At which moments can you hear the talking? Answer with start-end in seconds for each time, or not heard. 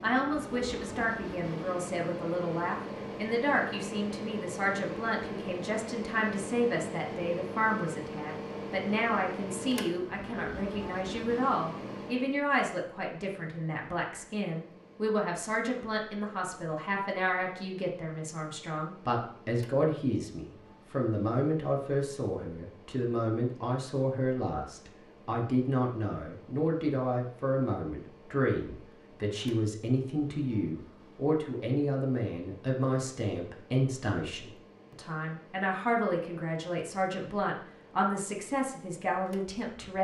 0.0-39.9.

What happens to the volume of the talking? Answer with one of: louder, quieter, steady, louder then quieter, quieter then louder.
steady.